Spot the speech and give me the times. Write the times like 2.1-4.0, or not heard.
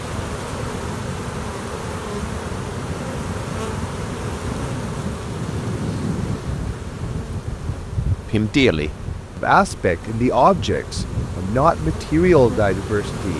8.3-13.3.